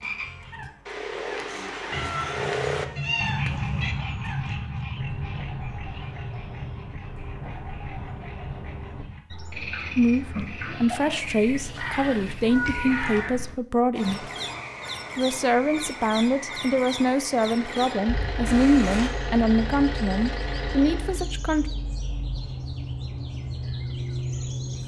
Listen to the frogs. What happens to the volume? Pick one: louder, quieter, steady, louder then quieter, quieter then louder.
quieter.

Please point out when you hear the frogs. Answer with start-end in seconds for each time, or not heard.
0.0-17.8.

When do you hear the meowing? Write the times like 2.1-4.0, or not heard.
1.9-4.0, 11.2-13.3, 18.4-19.1.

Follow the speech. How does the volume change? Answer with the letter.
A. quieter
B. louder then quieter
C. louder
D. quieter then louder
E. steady
E.